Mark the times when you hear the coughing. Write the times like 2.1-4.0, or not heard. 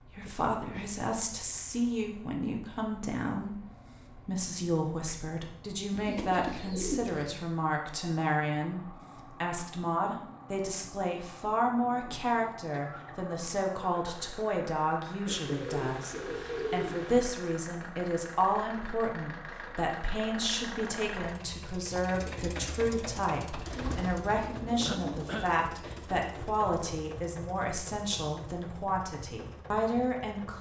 0.2-1.0, 12.7-13.2, 24.9-25.6.